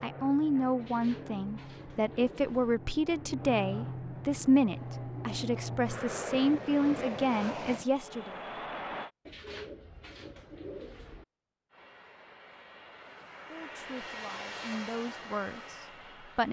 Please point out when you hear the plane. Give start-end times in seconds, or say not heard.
0.0-9.1, 11.7-16.4.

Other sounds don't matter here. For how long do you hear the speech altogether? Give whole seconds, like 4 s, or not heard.
11 s.